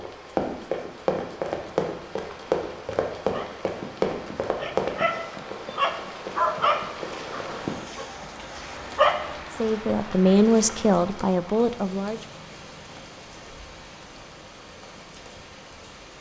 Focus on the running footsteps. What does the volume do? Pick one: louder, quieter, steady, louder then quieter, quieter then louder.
quieter.